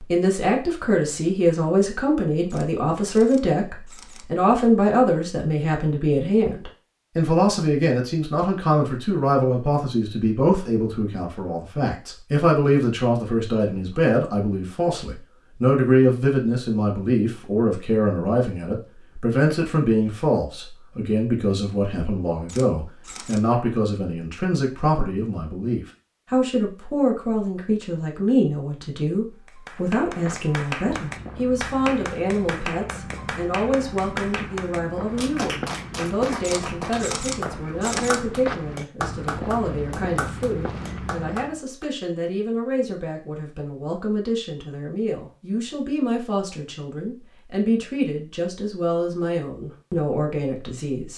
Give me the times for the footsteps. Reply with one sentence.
The footsteps can be heard from 29.8 to 41.6 s.